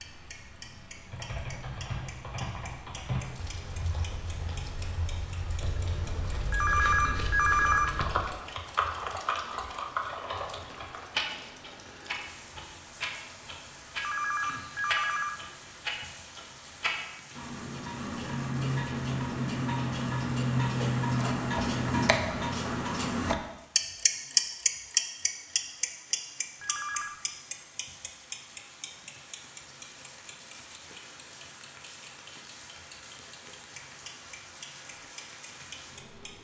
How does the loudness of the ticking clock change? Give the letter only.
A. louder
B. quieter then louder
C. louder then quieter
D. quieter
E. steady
C.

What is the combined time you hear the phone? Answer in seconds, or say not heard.
4 s.